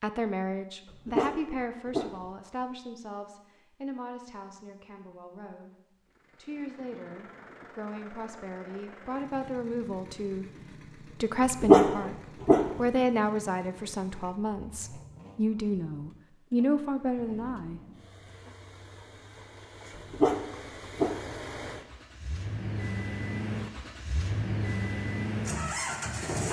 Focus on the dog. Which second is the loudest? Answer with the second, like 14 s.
12 s.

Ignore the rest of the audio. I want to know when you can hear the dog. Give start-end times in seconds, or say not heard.
0.9-2.1, 11.6-12.7, 19.9-21.1.